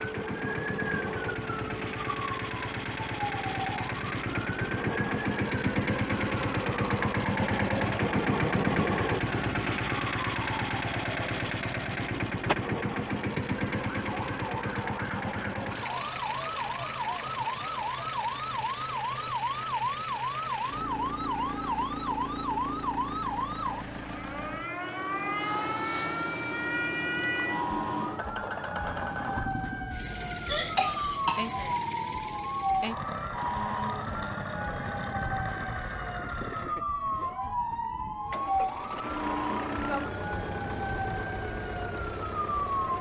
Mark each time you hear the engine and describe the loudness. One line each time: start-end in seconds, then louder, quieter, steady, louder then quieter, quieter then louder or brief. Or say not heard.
0.0-42.9 quieter.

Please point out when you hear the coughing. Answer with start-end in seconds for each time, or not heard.
30.4-31.8.